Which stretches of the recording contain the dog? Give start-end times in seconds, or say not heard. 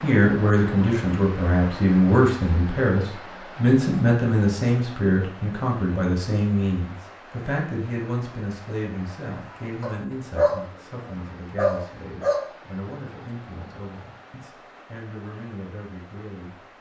9.8-12.4.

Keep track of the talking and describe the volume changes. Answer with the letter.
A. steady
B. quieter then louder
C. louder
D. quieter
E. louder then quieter
D.